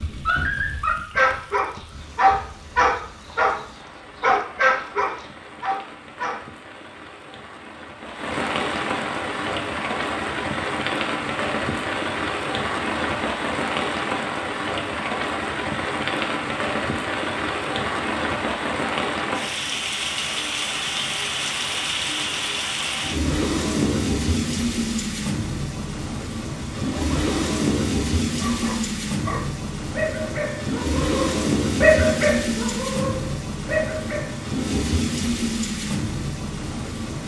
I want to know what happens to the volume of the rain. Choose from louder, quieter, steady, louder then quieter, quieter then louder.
louder.